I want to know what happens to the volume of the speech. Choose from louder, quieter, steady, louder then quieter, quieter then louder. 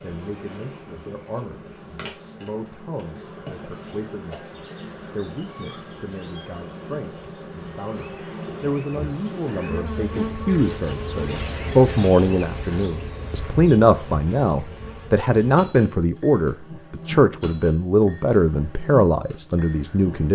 louder.